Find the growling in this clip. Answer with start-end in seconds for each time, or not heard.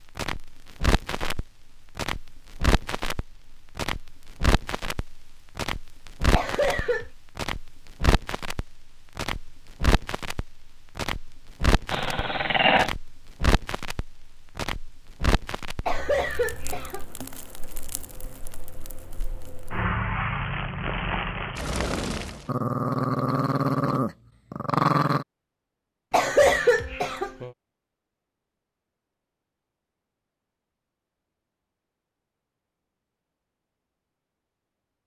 11.9-12.9, 22.4-25.2.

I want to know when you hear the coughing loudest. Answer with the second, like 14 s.
27 s.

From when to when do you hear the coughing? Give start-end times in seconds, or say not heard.
6.3-7.1, 15.8-17.1, 26.1-27.5.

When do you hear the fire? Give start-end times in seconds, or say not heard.
0.0-22.4.